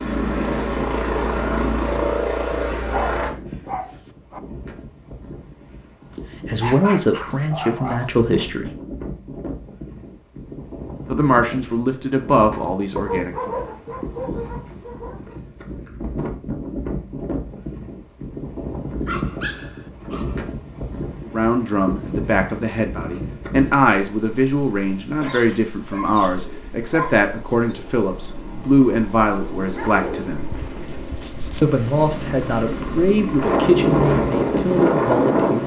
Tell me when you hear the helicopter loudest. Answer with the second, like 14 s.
2 s.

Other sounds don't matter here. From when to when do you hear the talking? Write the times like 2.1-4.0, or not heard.
6.5-8.7, 11.1-13.5, 21.2-30.4, 31.6-35.6.